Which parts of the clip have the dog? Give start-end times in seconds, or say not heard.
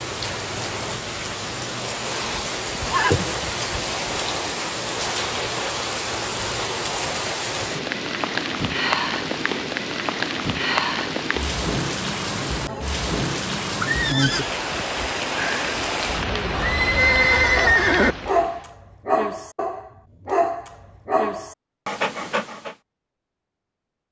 17.6-22.8.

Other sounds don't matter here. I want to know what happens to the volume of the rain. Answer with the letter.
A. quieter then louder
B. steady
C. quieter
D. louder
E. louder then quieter
B.